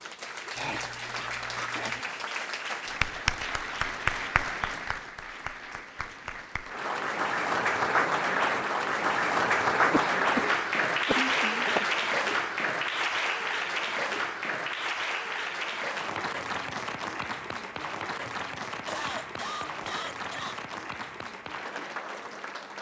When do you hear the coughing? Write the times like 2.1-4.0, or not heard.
0.6-2.0, 9.9-11.9, 18.2-20.6.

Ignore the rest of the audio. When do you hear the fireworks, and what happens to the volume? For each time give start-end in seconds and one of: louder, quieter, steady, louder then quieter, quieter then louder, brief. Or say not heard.
not heard.